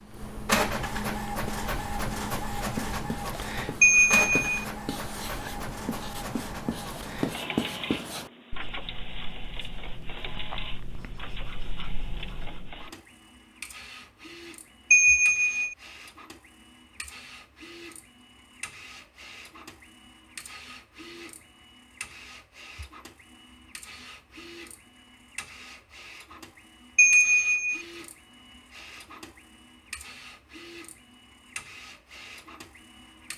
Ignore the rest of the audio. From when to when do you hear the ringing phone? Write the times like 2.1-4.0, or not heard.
3.8-4.7, 14.9-15.8, 26.9-27.8.